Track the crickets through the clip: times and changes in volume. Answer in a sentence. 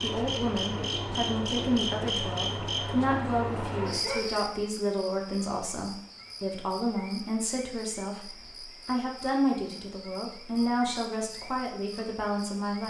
The crickets can be heard from 0.0 to 12.8 s, getting quieter.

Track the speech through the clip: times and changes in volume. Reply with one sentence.
You can hear the speech from 0.0 to 12.8 s, at a steady volume.